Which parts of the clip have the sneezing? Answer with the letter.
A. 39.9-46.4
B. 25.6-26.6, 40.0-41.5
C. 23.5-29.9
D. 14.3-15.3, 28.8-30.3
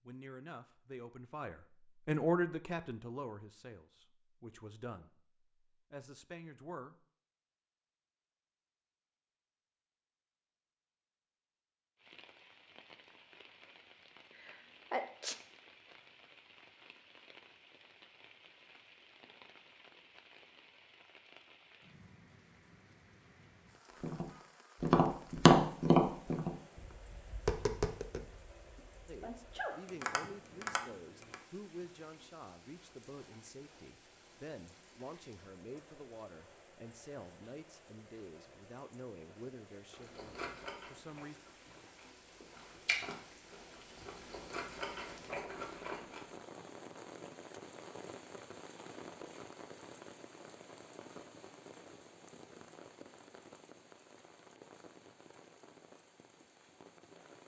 D.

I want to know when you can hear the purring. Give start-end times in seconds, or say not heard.
not heard.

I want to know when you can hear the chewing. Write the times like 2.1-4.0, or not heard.
39.9-46.4.